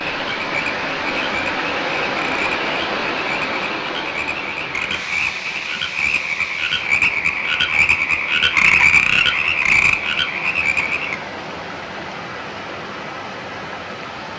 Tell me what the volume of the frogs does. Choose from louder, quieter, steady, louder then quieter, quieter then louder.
louder.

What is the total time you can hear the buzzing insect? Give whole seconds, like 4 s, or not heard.
not heard.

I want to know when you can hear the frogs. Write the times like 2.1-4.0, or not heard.
0.1-11.2.